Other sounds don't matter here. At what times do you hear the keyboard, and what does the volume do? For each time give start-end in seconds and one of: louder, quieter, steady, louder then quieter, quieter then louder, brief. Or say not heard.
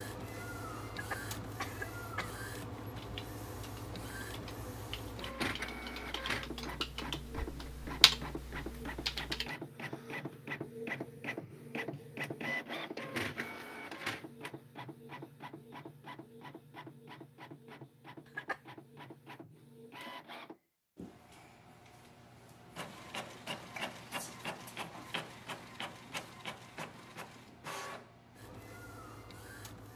2.9-9.5 louder.